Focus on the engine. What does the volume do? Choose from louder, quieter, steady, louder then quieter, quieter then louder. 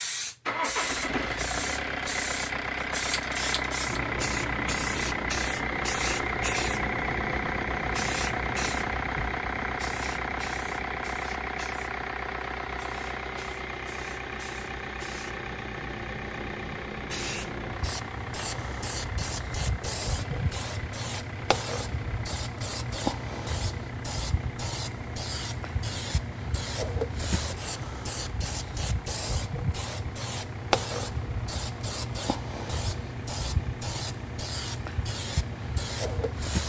quieter.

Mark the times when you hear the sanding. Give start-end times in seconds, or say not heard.
not heard.